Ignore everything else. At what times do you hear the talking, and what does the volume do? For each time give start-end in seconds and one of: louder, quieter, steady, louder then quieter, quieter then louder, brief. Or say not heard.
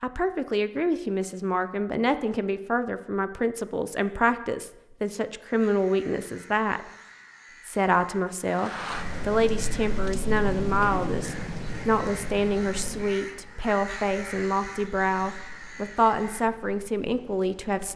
0.0-6.8 steady
7.7-17.9 steady.